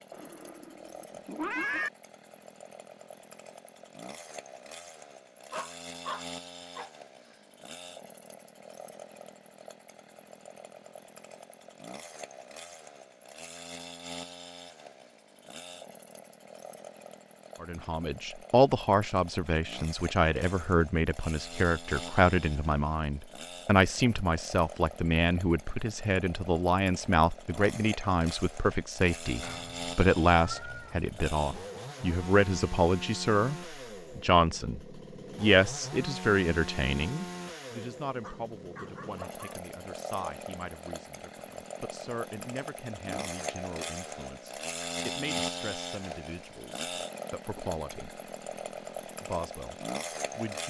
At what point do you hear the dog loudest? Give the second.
6 s.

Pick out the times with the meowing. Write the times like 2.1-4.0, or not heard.
0.1-1.9, 29.4-31.1.